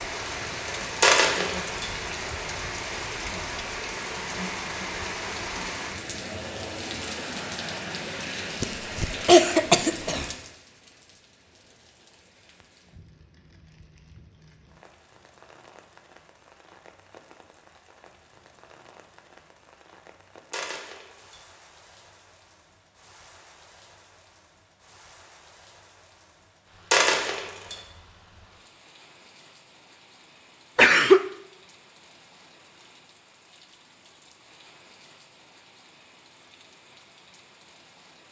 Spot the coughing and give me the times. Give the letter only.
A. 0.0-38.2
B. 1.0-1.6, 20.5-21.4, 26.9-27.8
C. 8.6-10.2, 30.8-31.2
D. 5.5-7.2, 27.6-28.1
C.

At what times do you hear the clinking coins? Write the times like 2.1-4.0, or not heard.
1.0-1.6, 20.5-21.4, 26.9-27.8.